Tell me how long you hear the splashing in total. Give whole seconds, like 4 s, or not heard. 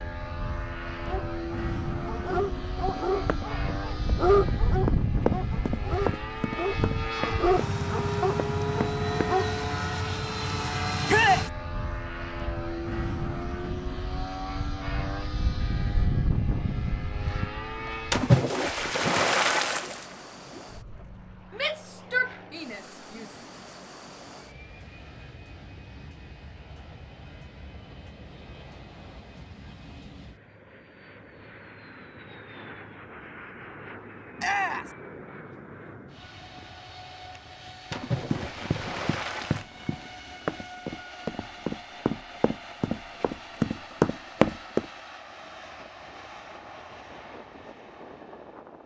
4 s.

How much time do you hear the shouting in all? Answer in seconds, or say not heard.
3 s.